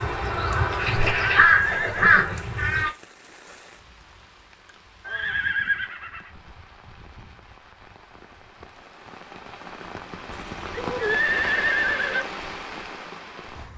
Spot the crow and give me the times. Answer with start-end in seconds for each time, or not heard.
0.0-2.9.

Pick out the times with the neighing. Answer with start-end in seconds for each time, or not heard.
0.9-2.4, 5.0-6.3, 10.3-12.2.